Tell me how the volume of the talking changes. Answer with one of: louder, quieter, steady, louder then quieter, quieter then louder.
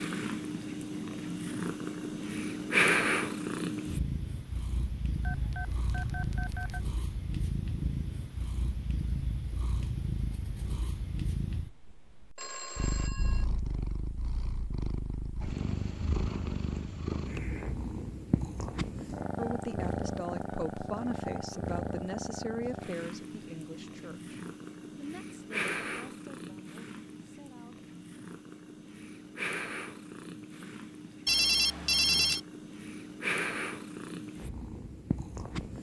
quieter.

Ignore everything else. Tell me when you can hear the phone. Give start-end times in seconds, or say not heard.
5.2-6.8, 12.3-13.4, 31.2-32.4.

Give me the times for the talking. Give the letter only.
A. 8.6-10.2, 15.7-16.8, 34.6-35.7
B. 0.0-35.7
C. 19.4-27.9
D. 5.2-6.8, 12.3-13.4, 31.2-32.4
C.